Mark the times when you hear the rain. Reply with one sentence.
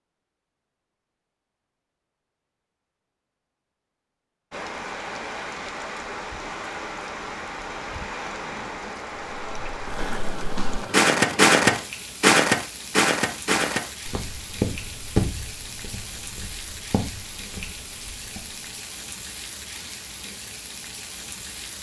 You can hear the rain from 4.5 to 21.7 s.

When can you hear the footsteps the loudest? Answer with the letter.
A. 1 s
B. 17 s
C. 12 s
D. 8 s
C.